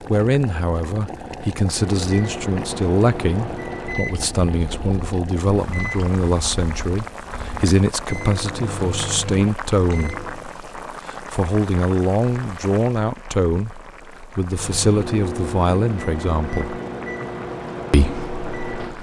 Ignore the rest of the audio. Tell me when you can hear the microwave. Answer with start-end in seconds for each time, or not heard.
1.6-10.5, 14.4-18.9.